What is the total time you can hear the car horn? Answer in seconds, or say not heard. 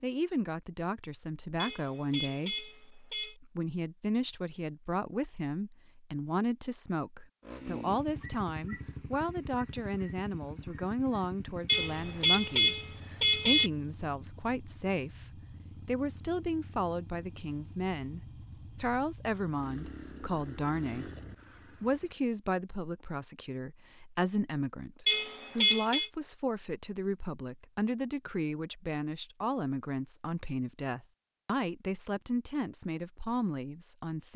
5 s.